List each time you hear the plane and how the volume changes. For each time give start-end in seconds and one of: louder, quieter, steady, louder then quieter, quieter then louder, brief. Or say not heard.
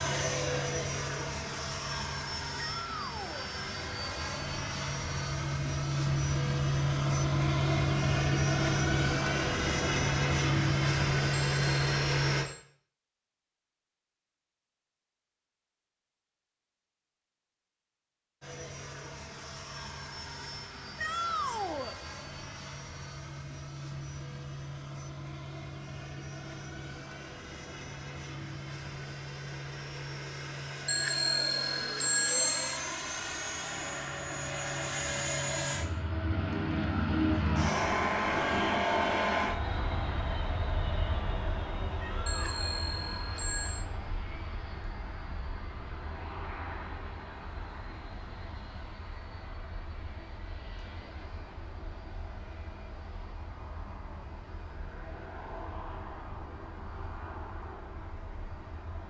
0.0-12.4 louder
18.4-59.0 louder then quieter.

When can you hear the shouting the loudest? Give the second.
21 s.